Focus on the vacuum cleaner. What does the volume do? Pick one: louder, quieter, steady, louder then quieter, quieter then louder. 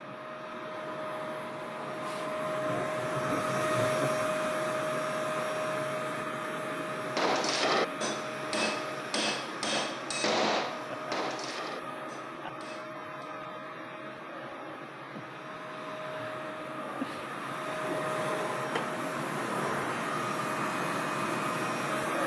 quieter then louder.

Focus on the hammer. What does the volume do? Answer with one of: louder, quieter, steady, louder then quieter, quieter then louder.
quieter.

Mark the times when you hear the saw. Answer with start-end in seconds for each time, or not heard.
2.6-4.2.